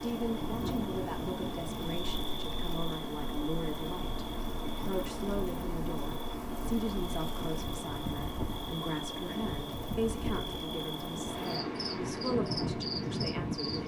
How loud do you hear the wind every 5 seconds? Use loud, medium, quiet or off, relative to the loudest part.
medium, medium, loud.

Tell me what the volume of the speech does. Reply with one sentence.
The volume of the speech stays about the same.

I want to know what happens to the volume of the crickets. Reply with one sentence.
The volume of the crickets stays about the same.